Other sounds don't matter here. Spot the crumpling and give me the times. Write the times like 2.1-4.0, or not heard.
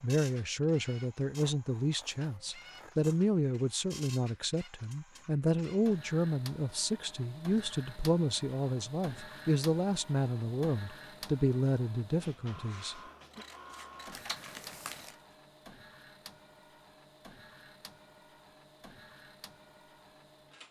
14.1-15.2.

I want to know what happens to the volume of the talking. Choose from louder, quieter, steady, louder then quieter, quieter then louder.
steady.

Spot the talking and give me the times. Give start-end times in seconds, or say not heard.
0.0-13.4.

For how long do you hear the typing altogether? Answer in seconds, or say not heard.
not heard.